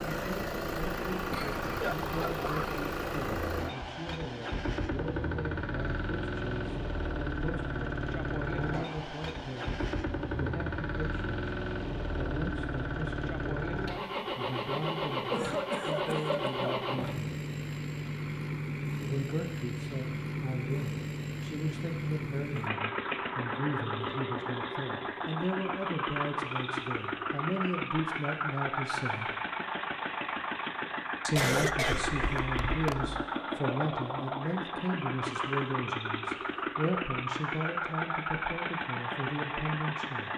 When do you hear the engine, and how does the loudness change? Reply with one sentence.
The engine can be heard from 0.0 to 40.3 s, at a steady volume.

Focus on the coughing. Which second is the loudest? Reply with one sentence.
The loudest moment of the coughing is at 32 seconds.